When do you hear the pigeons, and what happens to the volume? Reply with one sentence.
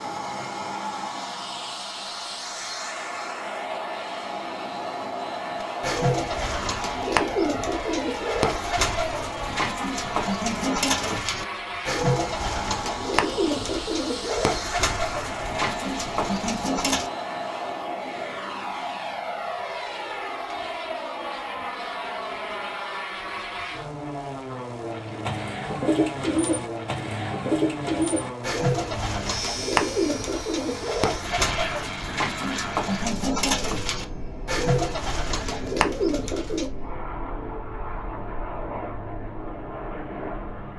The pigeons can be heard from 5.8 to 17.1 s, at a steady volume; and from 25.2 to 36.7 s, at a steady volume.